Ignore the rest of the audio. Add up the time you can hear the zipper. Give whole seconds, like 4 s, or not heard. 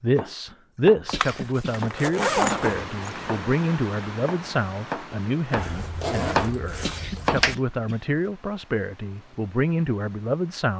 4 s.